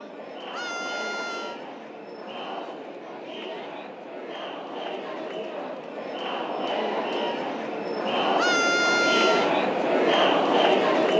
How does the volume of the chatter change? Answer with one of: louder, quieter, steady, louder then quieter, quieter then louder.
louder.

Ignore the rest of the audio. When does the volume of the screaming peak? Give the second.
9 s.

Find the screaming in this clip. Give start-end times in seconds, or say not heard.
0.5-1.6, 8.3-9.5.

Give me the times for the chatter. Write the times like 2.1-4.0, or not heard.
0.0-11.1.